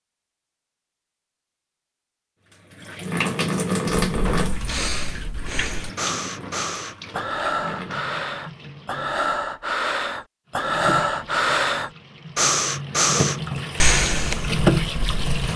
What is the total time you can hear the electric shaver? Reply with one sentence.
You can't hear the electric shaver here.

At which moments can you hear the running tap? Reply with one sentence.
You can hear the running tap from 2.5 to 9.3 s and from 10.5 to 15.5 s.